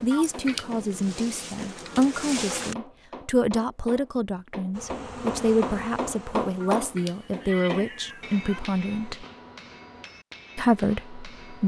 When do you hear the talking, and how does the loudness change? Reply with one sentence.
You can hear the talking from 0.0 to 9.2 s, at a steady volume; and briefly from 10.6 to 11.6 s.